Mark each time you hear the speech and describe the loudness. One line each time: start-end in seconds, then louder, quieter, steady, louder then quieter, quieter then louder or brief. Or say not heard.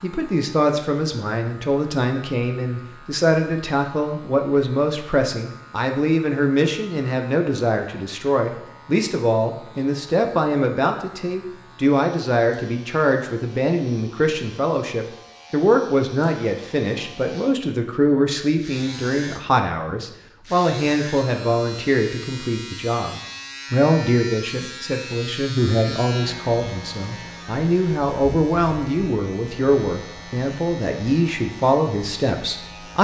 0.0-32.9 steady.